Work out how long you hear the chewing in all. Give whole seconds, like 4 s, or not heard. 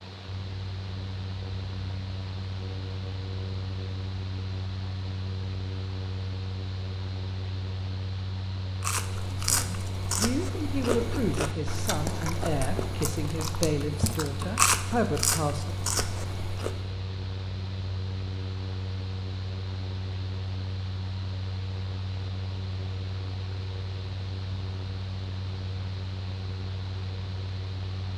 8 s.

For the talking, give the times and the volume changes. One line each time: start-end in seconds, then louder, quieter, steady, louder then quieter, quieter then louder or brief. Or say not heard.
9.3-15.8 steady.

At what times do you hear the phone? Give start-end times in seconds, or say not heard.
not heard.